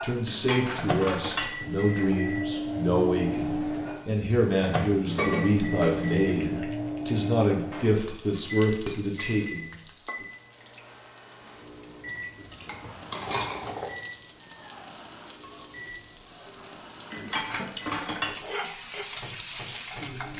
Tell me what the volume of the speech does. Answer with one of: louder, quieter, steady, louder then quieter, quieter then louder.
steady.